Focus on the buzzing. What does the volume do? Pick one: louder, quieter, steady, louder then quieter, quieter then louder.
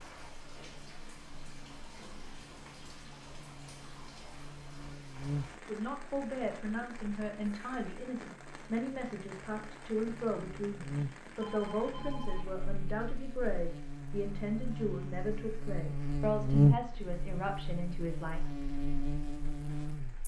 louder.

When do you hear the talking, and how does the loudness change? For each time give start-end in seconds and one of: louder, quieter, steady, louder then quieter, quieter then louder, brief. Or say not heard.
5.7-18.4 steady.